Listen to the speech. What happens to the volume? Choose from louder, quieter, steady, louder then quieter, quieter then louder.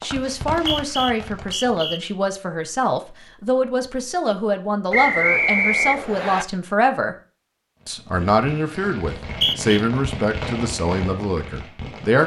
steady.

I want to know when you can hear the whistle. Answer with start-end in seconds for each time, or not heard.
0.5-2.0, 4.9-6.5, 9.2-9.8.